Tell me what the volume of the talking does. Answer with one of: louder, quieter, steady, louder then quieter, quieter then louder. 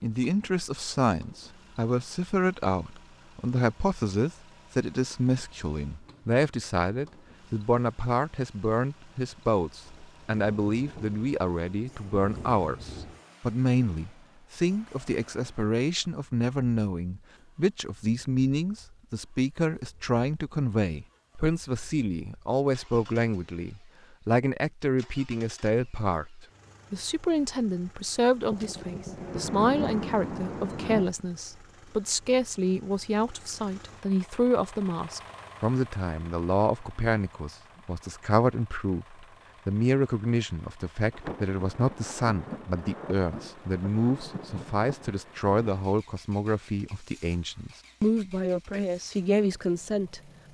steady.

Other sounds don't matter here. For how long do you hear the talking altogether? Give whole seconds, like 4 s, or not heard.
50 s.